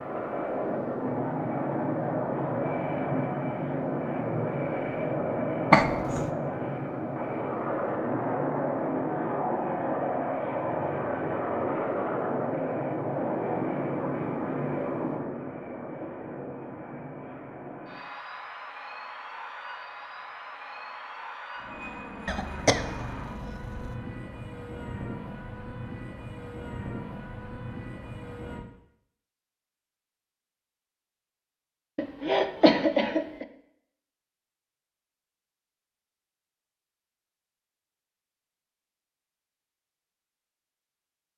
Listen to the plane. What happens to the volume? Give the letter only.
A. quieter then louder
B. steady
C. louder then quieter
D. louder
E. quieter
E.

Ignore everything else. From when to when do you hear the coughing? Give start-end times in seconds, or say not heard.
5.7-6.2, 22.2-23.9, 31.9-33.5.